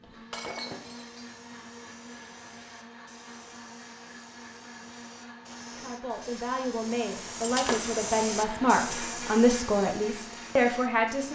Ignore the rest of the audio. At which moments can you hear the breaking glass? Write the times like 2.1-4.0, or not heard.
0.3-1.3, 7.4-7.9.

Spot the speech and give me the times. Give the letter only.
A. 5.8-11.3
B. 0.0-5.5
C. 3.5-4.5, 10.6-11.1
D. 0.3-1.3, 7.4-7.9
A.